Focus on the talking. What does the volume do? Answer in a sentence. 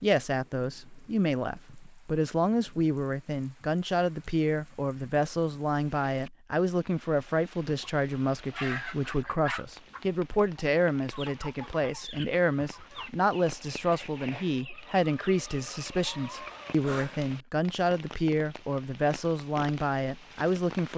The loudness of the talking stays about the same.